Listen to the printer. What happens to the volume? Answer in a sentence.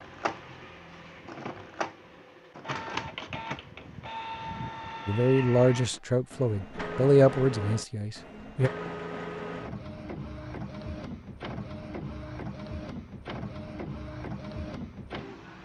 The loudness of the printer stays about the same.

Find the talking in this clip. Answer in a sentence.
The talking can be heard from 5.0 to 8.7 s.